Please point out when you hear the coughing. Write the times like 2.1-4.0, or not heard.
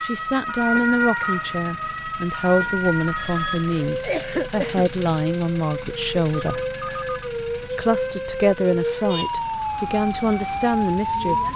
3.9-4.8.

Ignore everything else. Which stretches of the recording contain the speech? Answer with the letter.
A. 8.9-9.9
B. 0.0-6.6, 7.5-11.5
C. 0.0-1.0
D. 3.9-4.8
B.